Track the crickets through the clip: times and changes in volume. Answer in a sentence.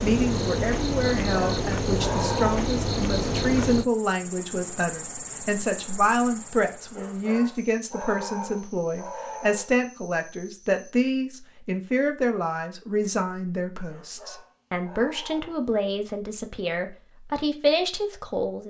The crickets can be heard from 0.0 to 10.9 s, getting quieter.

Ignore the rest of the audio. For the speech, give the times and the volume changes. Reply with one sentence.
You can hear the speech from 0.0 to 18.6 s, at a steady volume.